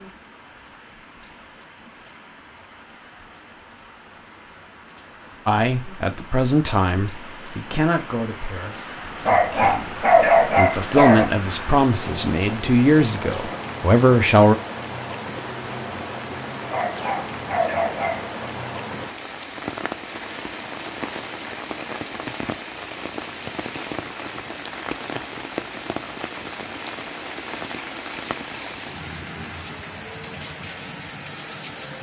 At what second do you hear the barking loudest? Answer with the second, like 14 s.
10 s.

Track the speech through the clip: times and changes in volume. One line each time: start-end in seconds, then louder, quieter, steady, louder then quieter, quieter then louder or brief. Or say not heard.
5.5-14.6 quieter then louder.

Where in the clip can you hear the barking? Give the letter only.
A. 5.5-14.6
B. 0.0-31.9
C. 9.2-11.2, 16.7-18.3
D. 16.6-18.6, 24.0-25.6
C.